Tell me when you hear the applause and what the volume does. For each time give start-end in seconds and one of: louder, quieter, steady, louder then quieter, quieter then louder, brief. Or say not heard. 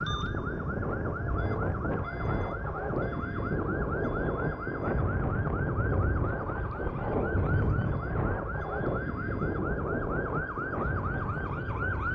not heard.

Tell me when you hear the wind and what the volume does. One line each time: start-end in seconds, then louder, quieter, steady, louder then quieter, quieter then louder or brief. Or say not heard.
0.0-12.1 steady.